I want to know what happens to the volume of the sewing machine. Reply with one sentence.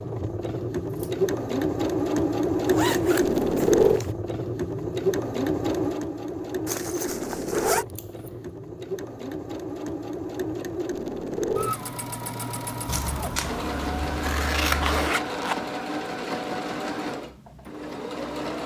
The loudness of the sewing machine goes down.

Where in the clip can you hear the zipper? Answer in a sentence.
You can hear the zipper from 2.6 to 4.1 s, from 6.7 to 7.8 s and from 14.8 to 15.6 s.